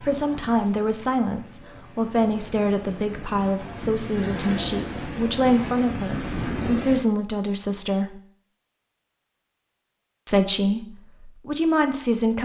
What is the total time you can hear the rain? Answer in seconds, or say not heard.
7 s.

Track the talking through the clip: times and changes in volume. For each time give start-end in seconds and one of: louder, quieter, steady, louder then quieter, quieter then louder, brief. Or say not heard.
0.0-8.2 steady
10.2-12.3 brief.